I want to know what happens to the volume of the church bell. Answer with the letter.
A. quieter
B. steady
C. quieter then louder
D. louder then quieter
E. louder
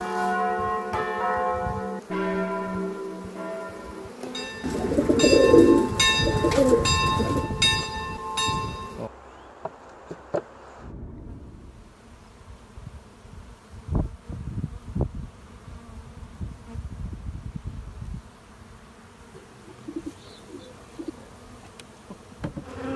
C.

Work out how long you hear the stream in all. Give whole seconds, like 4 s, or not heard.
not heard.